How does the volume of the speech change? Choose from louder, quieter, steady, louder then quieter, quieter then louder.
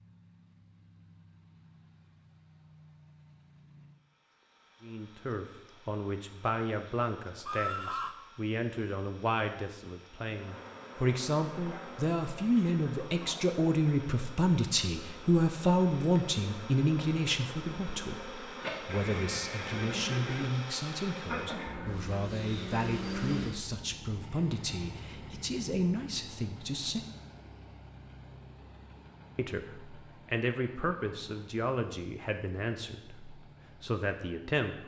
louder then quieter.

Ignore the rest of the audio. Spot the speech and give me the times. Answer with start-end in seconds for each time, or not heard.
4.8-27.1, 29.4-34.8.